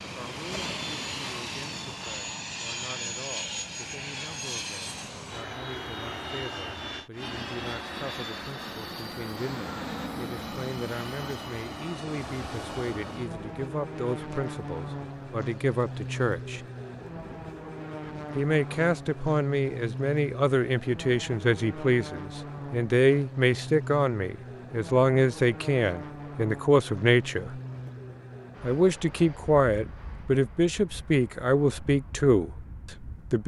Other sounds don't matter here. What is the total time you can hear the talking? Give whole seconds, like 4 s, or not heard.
31 s.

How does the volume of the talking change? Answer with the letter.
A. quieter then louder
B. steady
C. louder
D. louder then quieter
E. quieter
C.